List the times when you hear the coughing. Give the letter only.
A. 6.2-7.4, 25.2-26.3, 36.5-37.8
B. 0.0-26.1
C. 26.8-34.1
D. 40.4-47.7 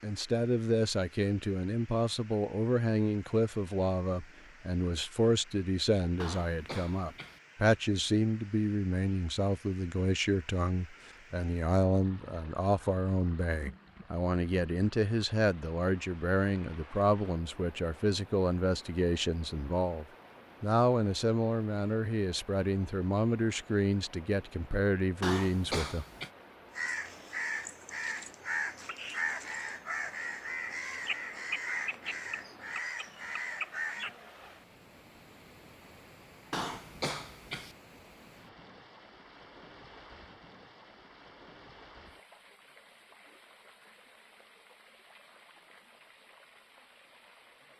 A.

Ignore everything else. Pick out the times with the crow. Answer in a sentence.
You can hear the crow from 26.8 to 34.1 s.